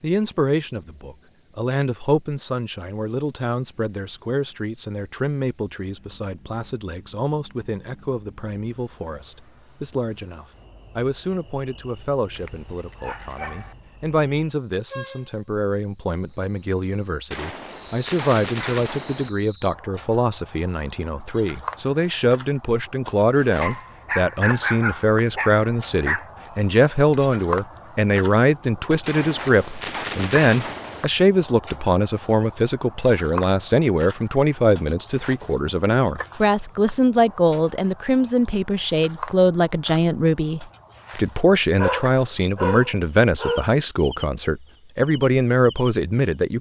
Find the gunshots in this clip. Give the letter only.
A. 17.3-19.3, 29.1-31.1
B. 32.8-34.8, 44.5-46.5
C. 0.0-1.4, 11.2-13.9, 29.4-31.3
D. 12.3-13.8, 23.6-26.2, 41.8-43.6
A.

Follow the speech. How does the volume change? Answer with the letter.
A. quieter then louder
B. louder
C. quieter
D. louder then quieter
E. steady
B.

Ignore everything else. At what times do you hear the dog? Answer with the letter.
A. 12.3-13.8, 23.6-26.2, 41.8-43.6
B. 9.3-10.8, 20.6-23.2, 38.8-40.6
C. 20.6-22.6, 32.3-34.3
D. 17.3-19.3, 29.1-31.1
A.